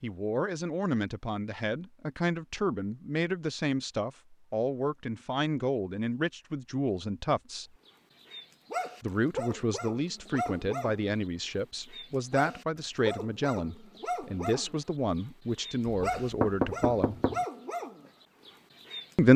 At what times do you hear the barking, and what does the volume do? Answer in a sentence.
The barking can be heard from 7.8 to 19.3 s, at a steady volume.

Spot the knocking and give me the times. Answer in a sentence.
The knocking can be heard from 15.9 to 17.4 s.